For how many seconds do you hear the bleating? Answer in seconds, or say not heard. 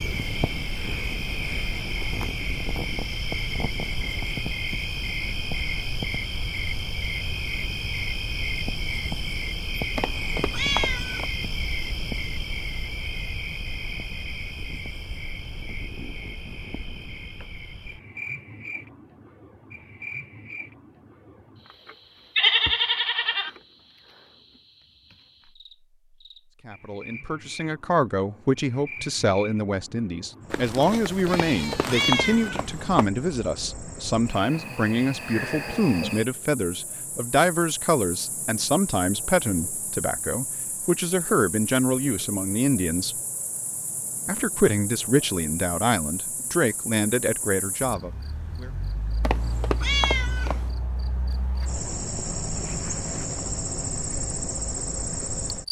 3 s.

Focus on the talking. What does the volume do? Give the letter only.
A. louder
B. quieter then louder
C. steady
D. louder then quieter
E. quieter
C.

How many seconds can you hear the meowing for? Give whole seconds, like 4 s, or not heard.
5 s.